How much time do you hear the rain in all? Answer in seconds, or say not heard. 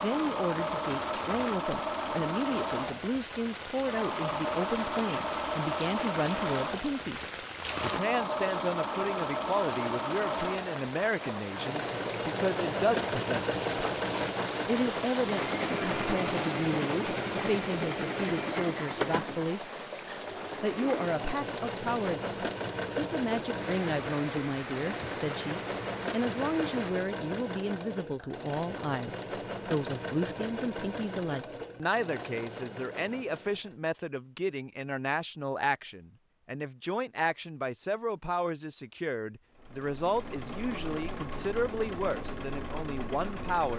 27 s.